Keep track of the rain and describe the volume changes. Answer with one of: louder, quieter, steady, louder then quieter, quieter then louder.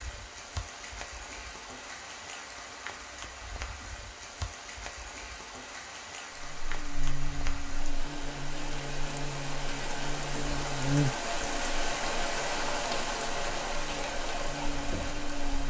louder.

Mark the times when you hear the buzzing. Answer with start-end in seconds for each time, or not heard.
6.4-15.6.